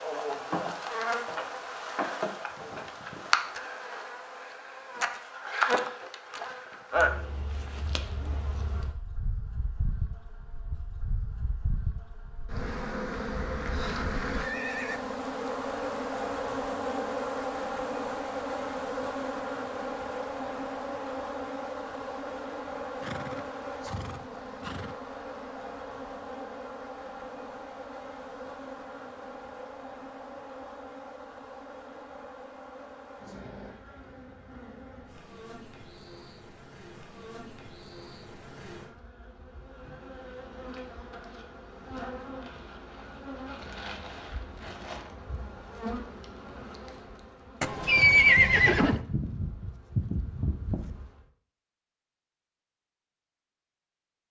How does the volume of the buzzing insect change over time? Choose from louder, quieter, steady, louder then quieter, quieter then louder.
quieter then louder.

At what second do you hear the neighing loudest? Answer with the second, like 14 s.
48 s.